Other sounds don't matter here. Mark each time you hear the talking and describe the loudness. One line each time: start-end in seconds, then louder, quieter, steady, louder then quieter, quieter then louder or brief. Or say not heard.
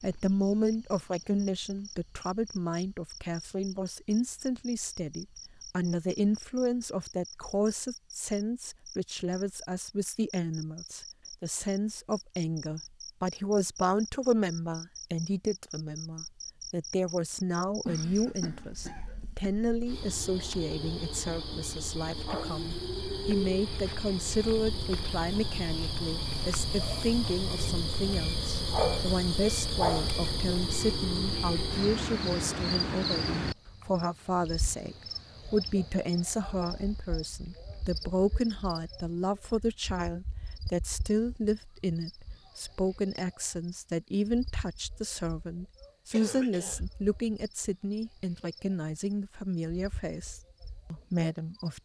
0.0-51.8 steady.